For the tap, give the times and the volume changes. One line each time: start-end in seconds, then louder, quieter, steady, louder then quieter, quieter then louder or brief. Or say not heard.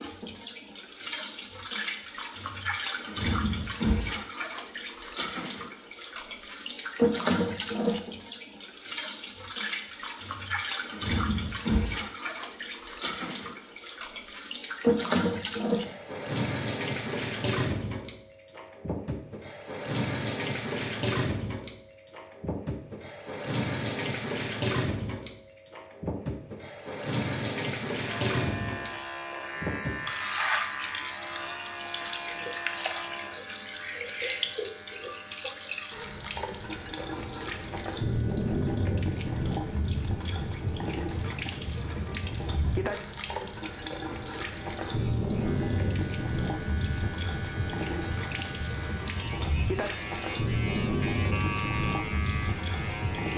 0.0-53.3 steady.